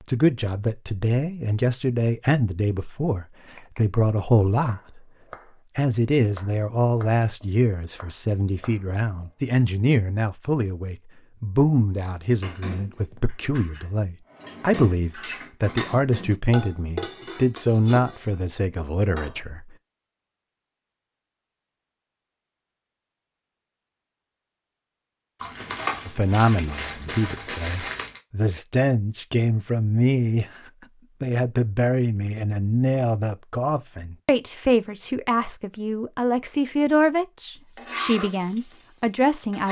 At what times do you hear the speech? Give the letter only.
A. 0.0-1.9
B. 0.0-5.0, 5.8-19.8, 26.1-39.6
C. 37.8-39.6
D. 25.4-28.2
B.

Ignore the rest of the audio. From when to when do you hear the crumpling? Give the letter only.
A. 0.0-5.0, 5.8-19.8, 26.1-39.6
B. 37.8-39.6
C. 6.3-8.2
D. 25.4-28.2
D.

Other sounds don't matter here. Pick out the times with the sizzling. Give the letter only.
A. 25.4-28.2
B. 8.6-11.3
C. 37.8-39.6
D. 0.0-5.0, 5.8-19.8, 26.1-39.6
C.